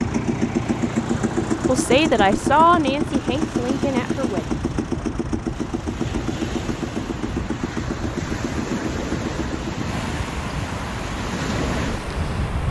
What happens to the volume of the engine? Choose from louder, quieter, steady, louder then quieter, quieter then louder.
quieter.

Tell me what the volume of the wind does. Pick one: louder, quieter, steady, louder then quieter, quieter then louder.
louder.